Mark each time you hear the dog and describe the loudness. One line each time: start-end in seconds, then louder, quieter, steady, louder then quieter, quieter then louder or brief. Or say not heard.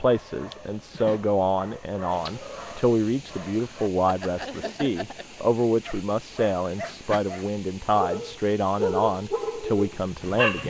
0.0-10.6 louder.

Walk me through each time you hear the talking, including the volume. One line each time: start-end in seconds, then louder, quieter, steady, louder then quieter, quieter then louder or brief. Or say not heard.
0.0-10.6 steady.